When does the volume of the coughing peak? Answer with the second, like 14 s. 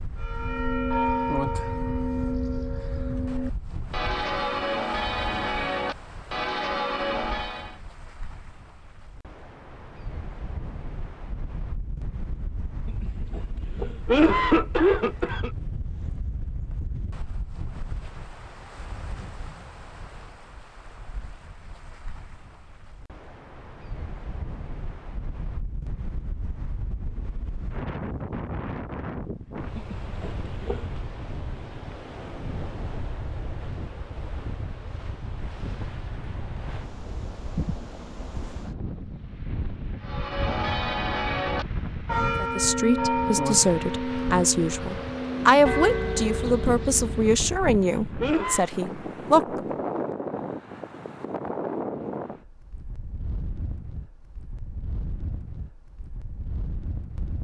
14 s.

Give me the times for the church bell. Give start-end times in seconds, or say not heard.
0.1-7.8, 40.0-47.4.